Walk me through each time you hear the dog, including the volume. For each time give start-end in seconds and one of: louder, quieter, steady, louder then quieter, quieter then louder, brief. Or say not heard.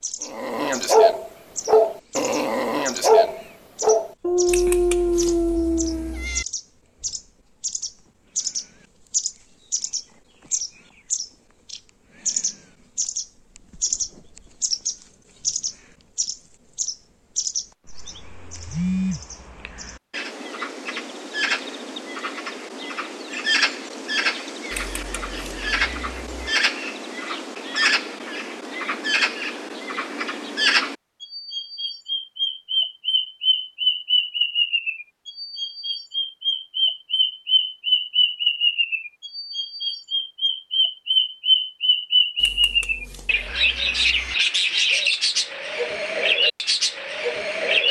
0.2-6.2 steady.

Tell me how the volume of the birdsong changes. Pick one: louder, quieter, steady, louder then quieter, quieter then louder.
louder.